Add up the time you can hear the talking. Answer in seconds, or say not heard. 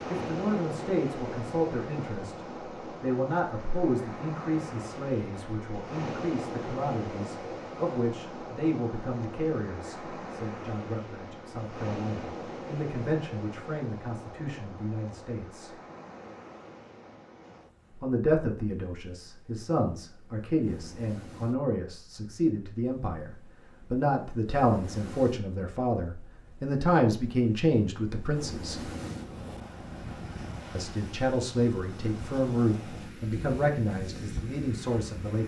31 s.